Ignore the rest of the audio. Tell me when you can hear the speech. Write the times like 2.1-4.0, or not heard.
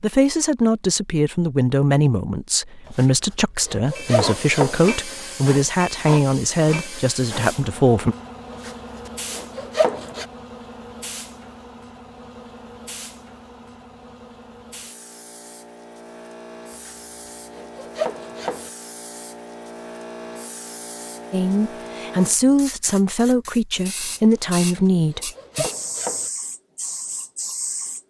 0.0-8.2, 21.3-25.7.